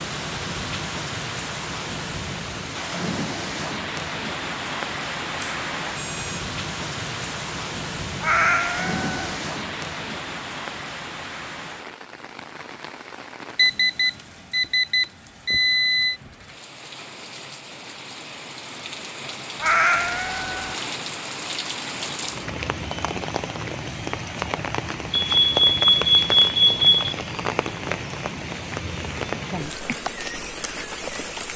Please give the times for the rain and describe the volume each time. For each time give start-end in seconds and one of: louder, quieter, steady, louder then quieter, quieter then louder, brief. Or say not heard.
0.0-31.5 quieter then louder.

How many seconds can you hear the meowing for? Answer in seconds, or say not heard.
2 s.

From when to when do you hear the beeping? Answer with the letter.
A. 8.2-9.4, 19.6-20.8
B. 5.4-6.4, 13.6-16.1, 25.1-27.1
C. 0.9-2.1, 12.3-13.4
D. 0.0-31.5
B.